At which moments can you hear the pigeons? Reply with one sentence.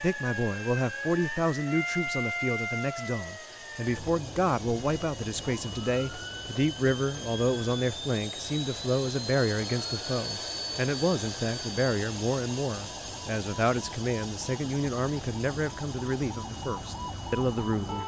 You can't hear the pigeons here.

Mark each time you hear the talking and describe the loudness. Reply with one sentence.
You can hear the talking from 0.0 to 18.0 s, at a steady volume.